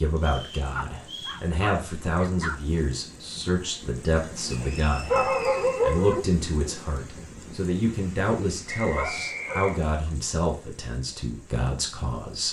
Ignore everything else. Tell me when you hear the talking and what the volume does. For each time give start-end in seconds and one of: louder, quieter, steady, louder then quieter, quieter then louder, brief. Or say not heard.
0.0-12.4 steady.